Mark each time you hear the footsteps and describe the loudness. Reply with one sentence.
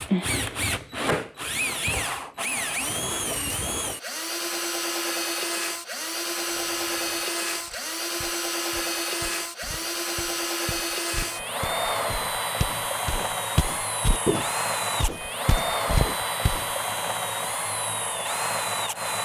You can hear the footsteps from 6.5 to 16.6 s, getting louder.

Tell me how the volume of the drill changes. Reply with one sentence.
The volume of the drill stays about the same.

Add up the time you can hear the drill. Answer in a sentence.
The drill can be heard for 19 seconds in total.